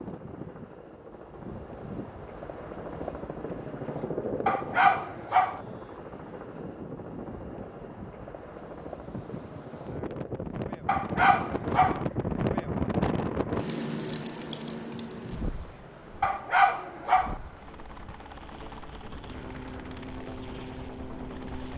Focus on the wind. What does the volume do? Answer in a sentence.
The loudness of the wind goes up, then down.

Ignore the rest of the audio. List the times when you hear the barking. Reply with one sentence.
The barking can be heard from 4.5 to 5.6 s, from 10.8 to 12.1 s and from 16.2 to 17.4 s.